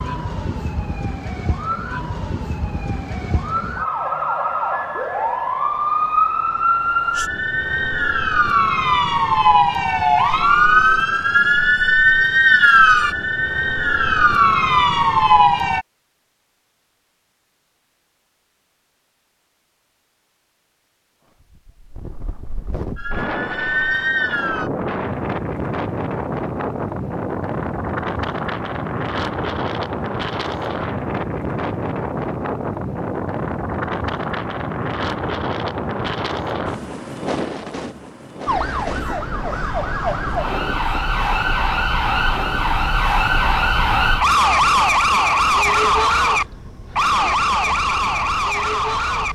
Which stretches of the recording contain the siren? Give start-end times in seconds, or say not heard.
0.0-15.8, 22.9-24.7, 38.5-49.3.